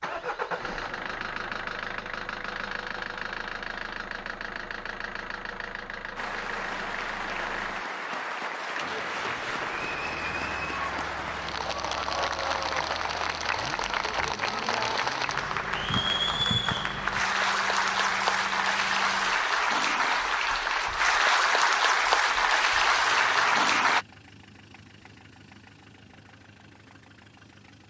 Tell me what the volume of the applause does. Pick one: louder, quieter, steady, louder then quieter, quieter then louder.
louder.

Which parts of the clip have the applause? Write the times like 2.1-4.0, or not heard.
6.2-24.1.